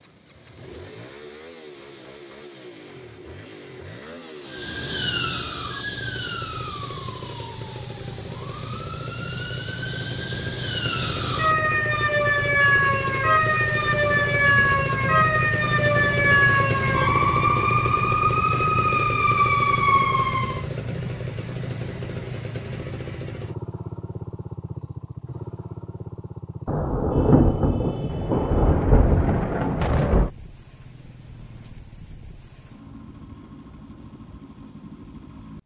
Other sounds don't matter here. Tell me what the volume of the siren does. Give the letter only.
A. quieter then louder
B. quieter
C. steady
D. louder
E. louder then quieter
D.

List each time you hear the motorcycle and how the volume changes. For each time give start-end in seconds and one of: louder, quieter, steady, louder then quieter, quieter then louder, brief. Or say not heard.
0.0-35.6 louder then quieter.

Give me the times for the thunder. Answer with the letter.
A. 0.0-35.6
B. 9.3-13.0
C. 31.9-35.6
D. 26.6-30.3
D.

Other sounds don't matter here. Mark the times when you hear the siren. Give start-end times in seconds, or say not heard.
4.5-20.6.